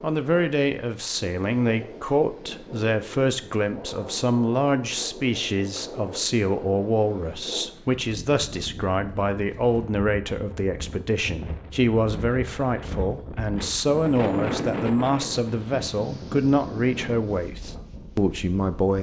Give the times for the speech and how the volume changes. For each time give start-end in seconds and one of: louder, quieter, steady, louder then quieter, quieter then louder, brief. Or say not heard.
0.0-18.9 steady.